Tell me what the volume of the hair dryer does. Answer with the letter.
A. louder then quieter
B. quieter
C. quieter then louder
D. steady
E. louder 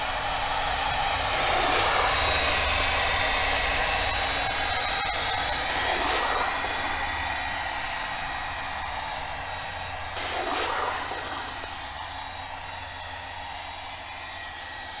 B.